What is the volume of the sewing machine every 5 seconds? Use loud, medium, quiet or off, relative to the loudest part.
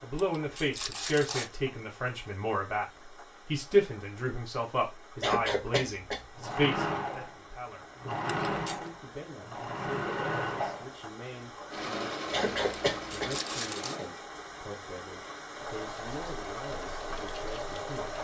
off, loud, loud, medium.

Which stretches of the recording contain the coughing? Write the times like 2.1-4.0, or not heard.
5.2-6.2, 12.3-13.3.